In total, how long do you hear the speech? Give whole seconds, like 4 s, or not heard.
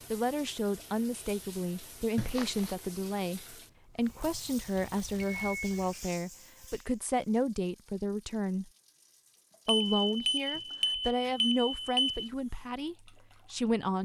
13 s.